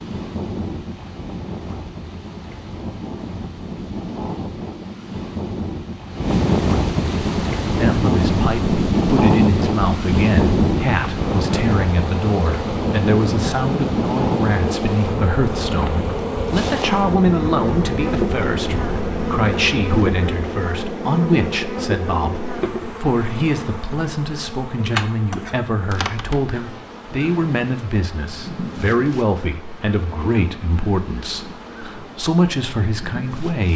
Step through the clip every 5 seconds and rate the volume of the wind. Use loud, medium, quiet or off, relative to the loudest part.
medium, loud, loud, medium, off, off, off.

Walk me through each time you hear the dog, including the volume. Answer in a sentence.
The dog can't be heard in this clip.